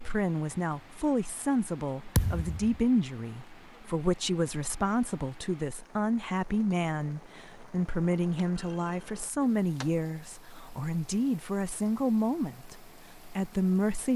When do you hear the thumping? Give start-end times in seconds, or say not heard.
2.1-2.8, 8.4-10.1.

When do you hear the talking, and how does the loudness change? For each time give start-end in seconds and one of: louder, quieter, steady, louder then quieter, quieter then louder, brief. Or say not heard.
0.0-14.1 steady.